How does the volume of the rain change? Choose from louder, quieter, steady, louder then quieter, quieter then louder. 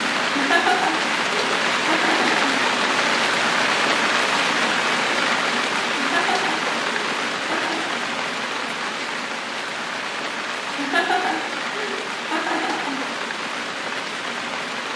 quieter.